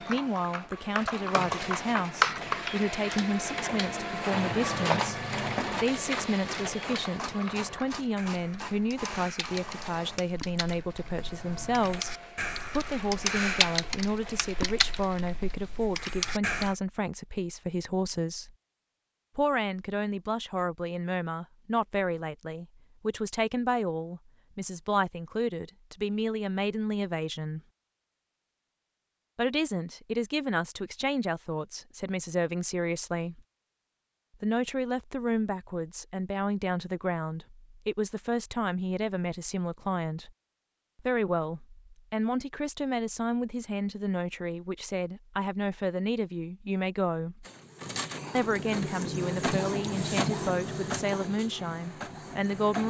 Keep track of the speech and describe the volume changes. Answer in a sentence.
The loudness of the speech stays about the same.